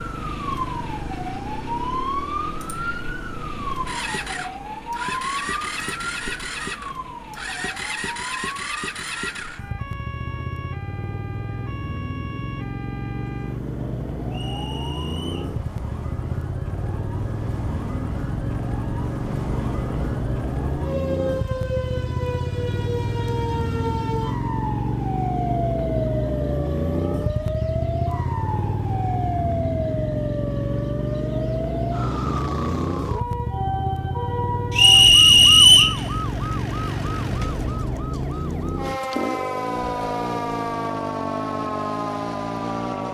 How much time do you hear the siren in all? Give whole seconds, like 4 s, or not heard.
43 s.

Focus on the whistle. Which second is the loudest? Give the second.
36 s.